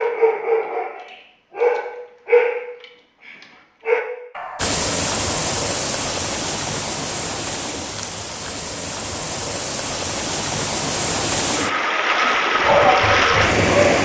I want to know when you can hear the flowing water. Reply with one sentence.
The flowing water can be heard from 4.5 to 14.0 s.